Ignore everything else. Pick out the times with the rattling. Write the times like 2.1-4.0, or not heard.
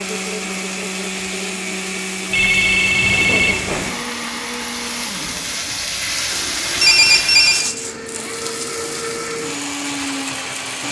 7.5-8.0.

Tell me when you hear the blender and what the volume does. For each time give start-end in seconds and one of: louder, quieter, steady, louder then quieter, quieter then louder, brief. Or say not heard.
0.0-10.8 quieter then louder.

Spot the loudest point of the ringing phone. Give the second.
7 s.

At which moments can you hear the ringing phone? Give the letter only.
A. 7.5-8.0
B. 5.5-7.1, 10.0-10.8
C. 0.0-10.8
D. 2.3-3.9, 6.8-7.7
D.